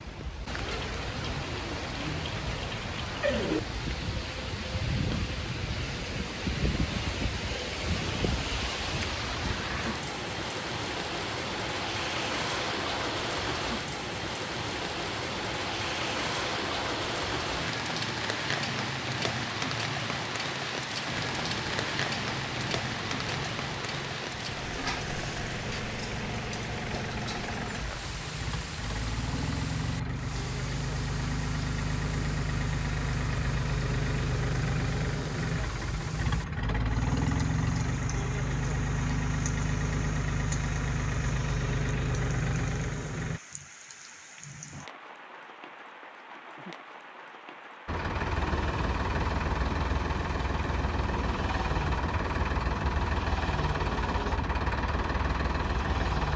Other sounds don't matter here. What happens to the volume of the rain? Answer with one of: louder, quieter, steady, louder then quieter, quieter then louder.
quieter.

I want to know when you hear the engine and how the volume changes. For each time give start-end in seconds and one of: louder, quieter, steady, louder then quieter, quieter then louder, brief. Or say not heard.
21.1-43.4 louder
47.9-56.3 steady.